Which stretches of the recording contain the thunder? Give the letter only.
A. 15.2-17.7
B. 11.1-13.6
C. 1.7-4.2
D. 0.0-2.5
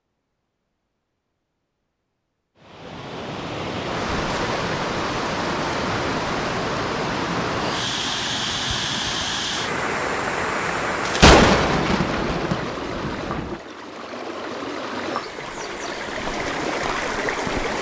B.